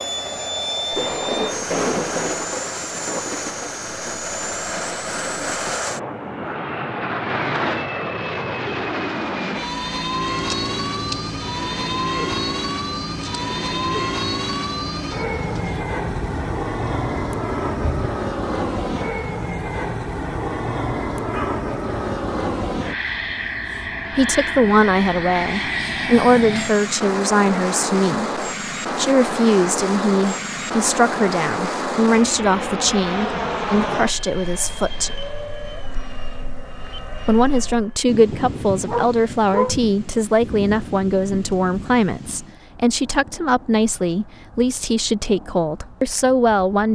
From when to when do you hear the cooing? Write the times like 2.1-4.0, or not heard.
10.3-15.8.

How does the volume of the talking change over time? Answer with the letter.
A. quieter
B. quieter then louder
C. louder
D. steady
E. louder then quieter
D.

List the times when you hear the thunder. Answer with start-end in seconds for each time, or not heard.
0.9-5.8, 16.1-18.1, 38.0-42.5.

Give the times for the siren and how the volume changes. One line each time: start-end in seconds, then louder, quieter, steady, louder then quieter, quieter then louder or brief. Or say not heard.
not heard.